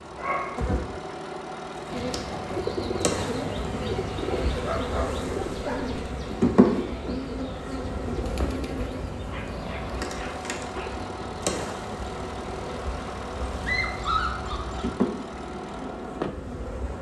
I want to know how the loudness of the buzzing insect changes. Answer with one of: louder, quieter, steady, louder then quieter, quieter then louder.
louder then quieter.